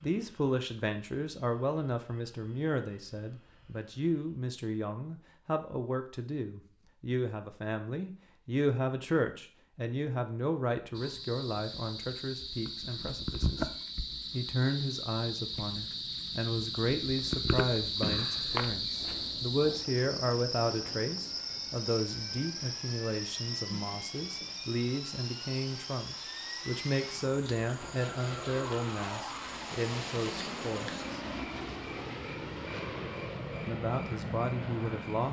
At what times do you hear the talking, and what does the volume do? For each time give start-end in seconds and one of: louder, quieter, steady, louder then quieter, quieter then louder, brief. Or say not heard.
0.0-31.2 steady
33.6-35.2 brief.